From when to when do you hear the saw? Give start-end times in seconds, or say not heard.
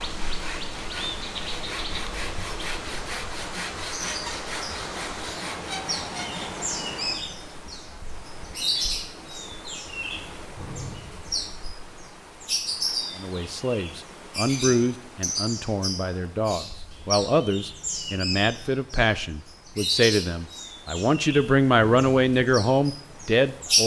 0.1-6.6.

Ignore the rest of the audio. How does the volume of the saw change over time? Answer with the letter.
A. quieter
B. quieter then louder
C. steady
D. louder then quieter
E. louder
C.